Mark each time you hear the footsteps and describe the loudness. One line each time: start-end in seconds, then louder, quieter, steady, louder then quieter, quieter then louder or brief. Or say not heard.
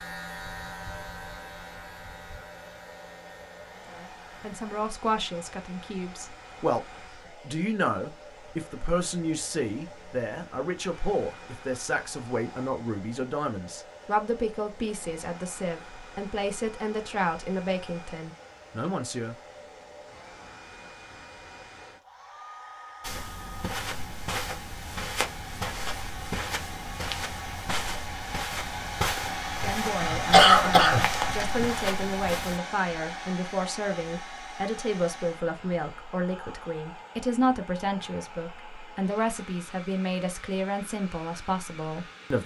23.0-32.6 steady.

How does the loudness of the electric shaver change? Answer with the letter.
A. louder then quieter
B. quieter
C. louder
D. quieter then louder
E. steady
B.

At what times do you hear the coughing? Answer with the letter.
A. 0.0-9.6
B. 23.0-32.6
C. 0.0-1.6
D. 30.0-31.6
D.